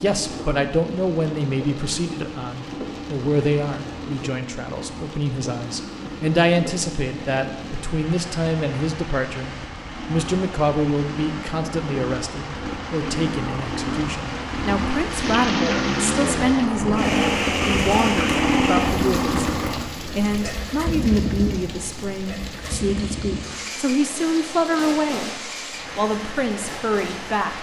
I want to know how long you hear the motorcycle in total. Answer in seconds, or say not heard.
27 s.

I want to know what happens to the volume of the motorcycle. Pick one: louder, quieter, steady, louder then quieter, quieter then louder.
louder then quieter.